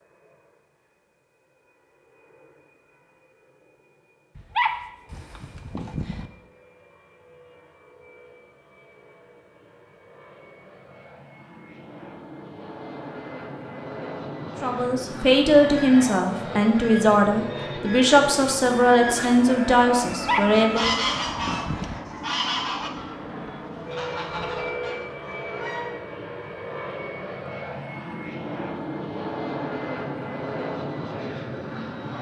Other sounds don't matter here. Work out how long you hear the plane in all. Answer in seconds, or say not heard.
32 s.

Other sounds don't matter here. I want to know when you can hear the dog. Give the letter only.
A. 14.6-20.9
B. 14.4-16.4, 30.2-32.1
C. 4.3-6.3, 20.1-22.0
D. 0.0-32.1
C.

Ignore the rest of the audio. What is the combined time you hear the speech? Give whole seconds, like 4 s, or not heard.
6 s.